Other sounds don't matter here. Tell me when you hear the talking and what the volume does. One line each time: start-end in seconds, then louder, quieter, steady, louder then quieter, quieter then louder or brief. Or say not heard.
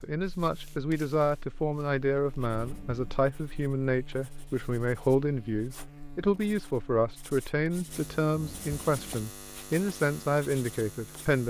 0.0-11.4 steady.